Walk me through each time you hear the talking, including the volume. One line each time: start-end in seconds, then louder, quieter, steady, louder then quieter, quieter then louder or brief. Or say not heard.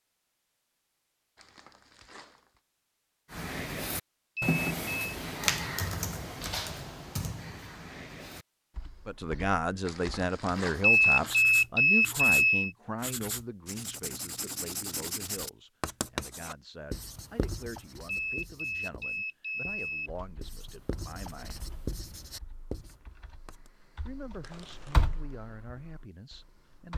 9.1-21.6 quieter
24.1-26.9 brief.